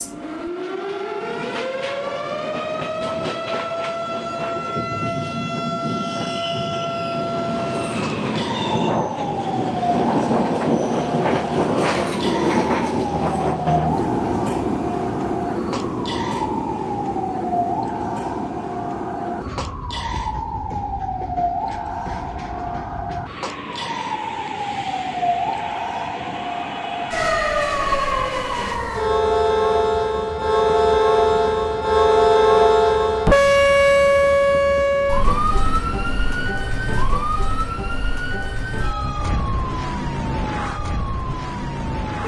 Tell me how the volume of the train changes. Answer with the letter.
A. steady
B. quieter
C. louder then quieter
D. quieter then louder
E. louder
C.